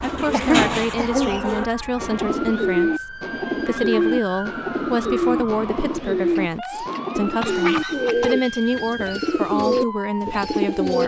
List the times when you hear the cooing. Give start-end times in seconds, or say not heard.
0.0-11.0.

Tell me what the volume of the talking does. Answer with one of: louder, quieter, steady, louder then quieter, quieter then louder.
steady.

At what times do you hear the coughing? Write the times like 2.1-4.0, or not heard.
0.3-1.4, 6.3-8.3.